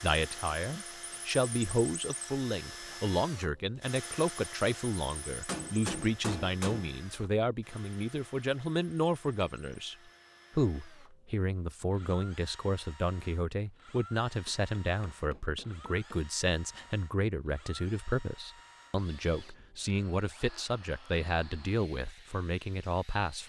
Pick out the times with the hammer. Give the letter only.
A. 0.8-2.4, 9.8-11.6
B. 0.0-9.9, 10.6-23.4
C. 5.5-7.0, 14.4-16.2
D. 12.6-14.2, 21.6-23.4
C.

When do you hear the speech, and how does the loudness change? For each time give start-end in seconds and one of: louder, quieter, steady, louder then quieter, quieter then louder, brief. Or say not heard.
0.0-9.9 steady
10.6-23.4 steady.